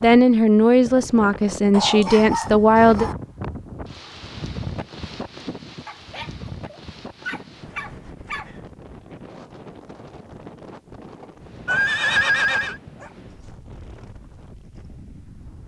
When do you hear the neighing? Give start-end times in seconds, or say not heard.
11.7-12.8.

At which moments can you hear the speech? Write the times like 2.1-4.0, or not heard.
0.0-3.1.